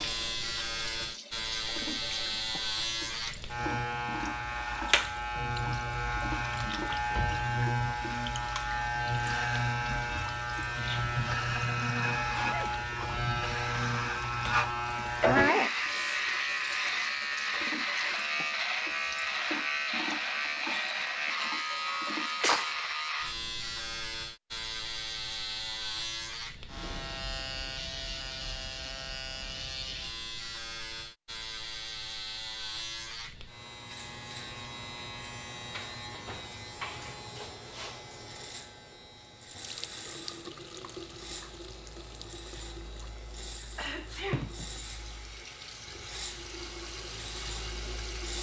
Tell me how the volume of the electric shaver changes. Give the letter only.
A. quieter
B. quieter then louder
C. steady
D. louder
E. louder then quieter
A.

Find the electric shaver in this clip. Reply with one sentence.
You can hear the electric shaver from 0.0 to 48.3 s.